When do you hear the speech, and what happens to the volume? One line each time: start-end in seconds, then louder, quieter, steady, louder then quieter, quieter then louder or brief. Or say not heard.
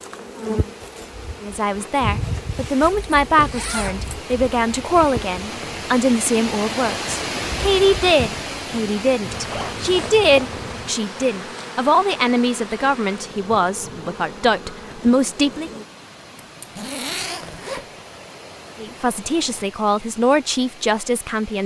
1.4-15.7 steady
18.8-21.6 brief.